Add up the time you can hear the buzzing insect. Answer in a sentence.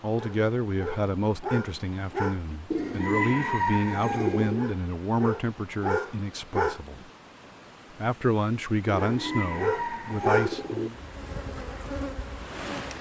The buzzing insect can be heard for 2 seconds in total.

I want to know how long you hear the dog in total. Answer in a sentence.
The dog can be heard for 6 seconds in total.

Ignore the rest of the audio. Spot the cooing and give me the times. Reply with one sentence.
You can hear the cooing from 2.7 to 4.7 s and from 9.0 to 10.9 s.